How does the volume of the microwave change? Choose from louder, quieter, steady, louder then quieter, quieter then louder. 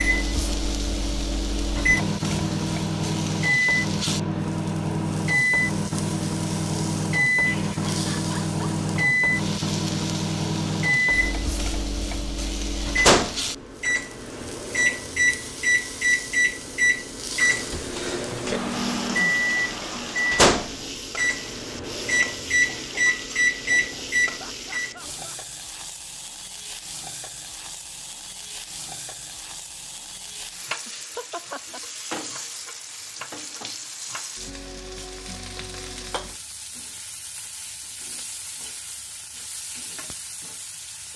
steady.